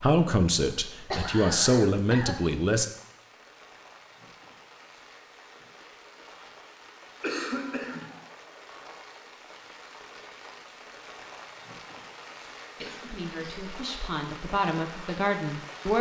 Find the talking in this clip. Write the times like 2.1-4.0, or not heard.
0.0-2.9, 13.0-15.9.